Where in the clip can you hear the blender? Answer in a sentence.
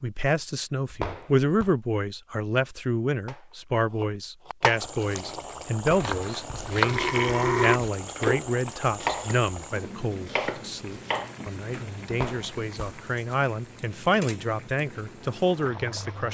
You can't hear the blender here.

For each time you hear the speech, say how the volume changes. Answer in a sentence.
The speech can be heard from 0.0 to 16.2 s, getting quieter then louder.